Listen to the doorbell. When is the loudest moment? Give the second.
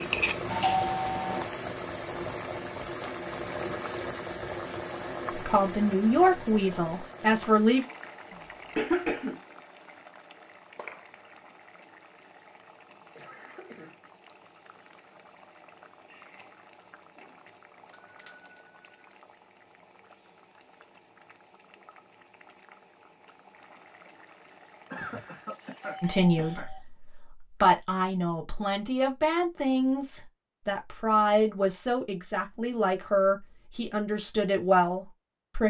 1 s.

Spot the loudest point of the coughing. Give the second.
9 s.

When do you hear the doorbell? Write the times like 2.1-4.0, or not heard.
0.5-1.4, 17.9-19.1, 24.9-26.8.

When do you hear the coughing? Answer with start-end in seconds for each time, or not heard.
8.3-9.4, 13.2-13.9, 24.9-26.7.